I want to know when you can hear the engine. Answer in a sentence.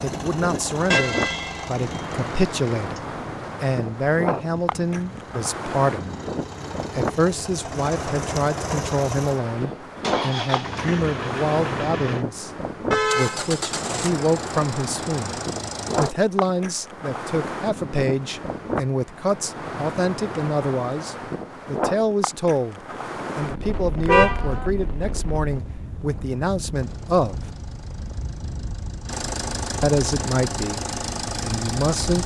The engine can be heard from 0.0 to 16.1 s and from 26.7 to 32.2 s.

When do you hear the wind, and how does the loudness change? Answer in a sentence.
You can hear the wind from 0.0 to 32.2 s, getting quieter.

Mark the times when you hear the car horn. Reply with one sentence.
The car horn can be heard from 0.9 to 2.2 s, from 12.9 to 13.5 s and from 23.9 to 25.4 s.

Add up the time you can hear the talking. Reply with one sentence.
The talking can be heard for 29 seconds in total.